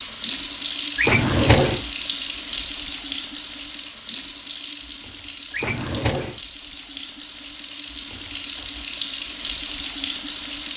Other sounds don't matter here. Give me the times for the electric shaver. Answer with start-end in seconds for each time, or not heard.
not heard.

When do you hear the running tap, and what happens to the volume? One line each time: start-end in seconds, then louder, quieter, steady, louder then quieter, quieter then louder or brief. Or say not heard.
0.0-10.7 quieter then louder.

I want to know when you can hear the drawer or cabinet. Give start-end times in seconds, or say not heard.
0.9-1.9, 5.5-6.4.